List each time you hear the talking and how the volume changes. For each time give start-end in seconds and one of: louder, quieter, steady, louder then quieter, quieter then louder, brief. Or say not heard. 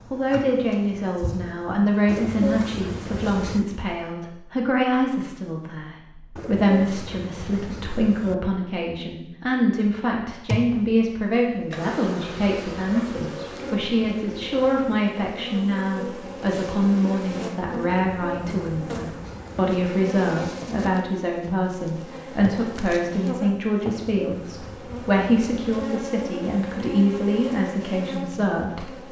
0.1-29.0 steady.